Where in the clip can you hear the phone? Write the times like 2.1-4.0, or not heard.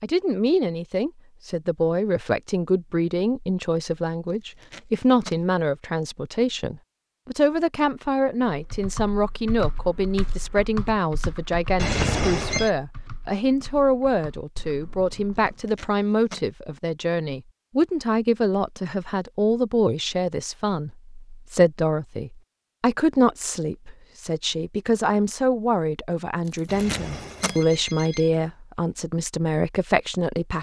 11.8-12.7, 26.6-28.6.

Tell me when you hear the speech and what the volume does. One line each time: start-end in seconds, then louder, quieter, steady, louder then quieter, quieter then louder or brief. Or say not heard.
0.0-30.5 steady.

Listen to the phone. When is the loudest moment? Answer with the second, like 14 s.
12 s.